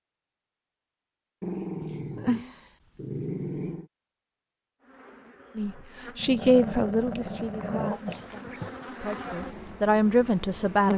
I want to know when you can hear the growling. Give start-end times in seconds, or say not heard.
1.4-3.9, 6.2-8.8.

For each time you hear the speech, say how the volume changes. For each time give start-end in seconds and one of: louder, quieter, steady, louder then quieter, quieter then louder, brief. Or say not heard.
5.5-10.9 quieter then louder.